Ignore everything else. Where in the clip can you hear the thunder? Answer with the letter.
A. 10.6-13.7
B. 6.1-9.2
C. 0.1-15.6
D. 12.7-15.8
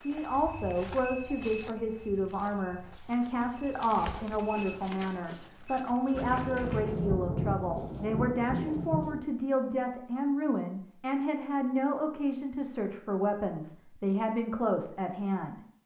B.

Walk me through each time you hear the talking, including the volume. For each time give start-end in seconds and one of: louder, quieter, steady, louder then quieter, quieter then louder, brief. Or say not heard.
0.1-15.6 steady.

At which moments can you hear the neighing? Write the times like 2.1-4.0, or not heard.
not heard.